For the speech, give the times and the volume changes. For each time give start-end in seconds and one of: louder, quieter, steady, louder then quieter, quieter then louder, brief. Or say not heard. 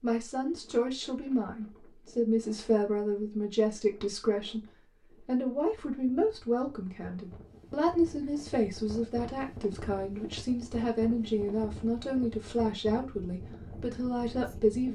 0.0-14.9 steady.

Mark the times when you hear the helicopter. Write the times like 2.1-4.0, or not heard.
not heard.